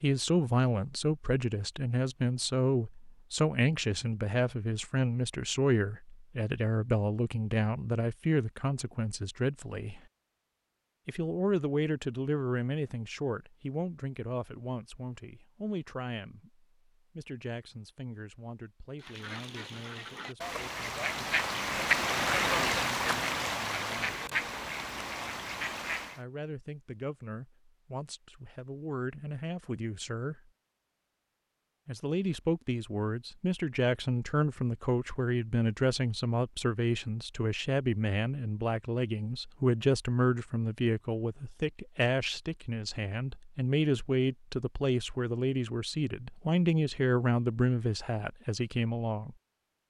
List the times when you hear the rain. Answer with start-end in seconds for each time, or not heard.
not heard.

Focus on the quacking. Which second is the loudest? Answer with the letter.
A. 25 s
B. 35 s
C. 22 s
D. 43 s
C.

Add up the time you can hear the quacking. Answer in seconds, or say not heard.
7 s.